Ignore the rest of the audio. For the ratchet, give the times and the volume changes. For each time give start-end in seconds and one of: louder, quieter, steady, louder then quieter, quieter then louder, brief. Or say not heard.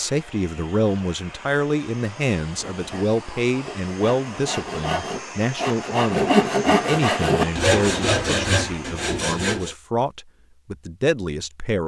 not heard.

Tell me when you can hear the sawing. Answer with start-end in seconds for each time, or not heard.
2.6-9.8.